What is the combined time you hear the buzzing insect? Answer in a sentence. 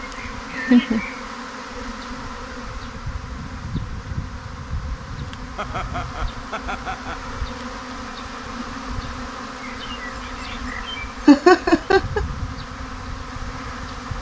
The buzzing insect can be heard for 14 seconds in total.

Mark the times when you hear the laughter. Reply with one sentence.
The laughter can be heard from 0.1 to 1.1 s, from 5.5 to 7.3 s and from 11.2 to 12.2 s.